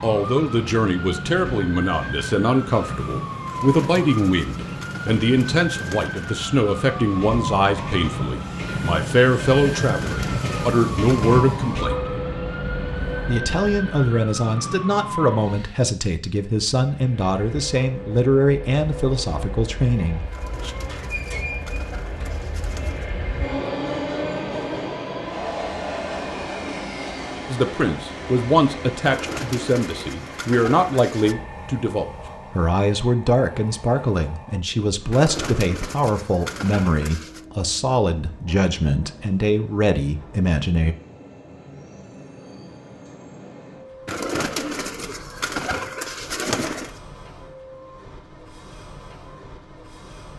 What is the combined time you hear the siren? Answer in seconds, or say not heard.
16 s.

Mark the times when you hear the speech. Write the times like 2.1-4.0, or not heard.
0.0-12.1, 13.2-20.7, 27.4-41.0.